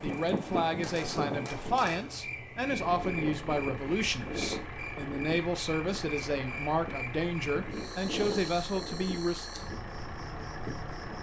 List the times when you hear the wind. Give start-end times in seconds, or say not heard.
0.0-11.1.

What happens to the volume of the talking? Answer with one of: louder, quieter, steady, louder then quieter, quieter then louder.
steady.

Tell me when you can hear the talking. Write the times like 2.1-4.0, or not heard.
0.0-9.5.